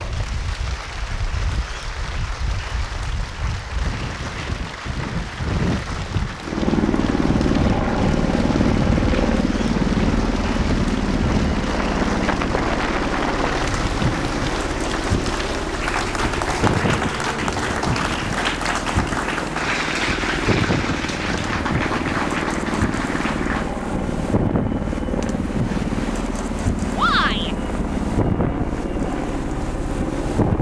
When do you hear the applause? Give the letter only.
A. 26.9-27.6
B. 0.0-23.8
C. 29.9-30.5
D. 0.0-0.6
B.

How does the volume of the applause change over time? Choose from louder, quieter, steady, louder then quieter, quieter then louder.
louder.